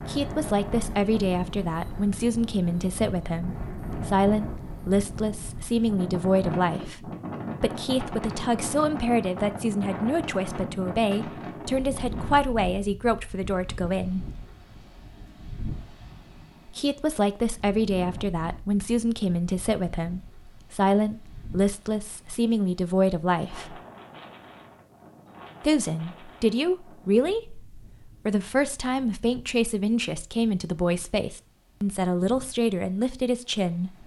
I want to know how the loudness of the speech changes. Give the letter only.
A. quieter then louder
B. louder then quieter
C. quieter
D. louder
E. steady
E.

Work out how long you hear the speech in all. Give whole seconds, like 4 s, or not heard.
30 s.